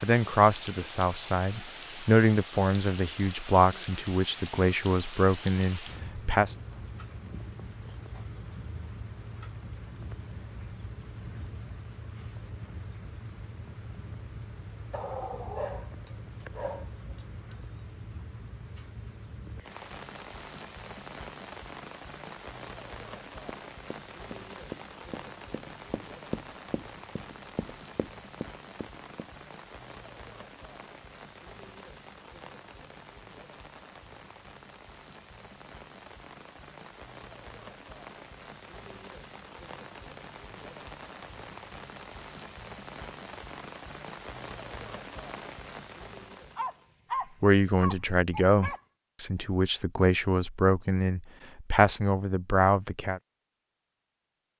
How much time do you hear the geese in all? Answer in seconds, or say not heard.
not heard.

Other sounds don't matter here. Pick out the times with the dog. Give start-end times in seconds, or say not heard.
14.9-17.2, 46.5-48.8.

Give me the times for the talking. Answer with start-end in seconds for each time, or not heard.
0.0-6.5, 47.4-53.2.